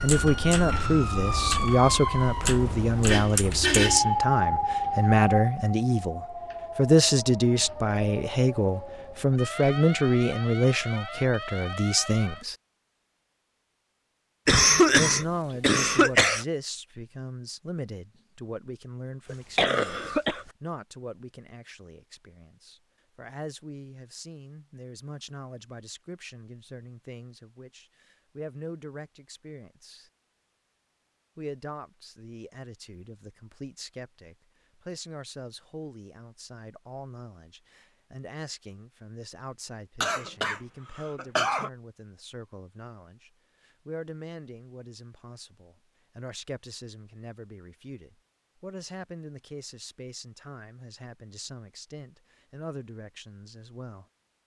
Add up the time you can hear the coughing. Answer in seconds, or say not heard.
5 s.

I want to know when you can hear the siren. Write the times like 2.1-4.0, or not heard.
0.0-12.5.